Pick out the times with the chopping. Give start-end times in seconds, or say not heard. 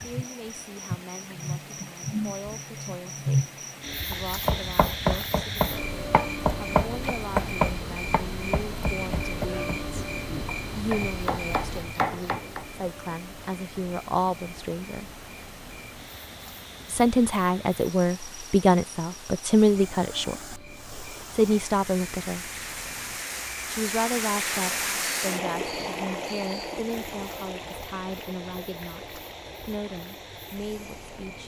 4.1-12.7.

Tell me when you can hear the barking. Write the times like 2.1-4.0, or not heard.
not heard.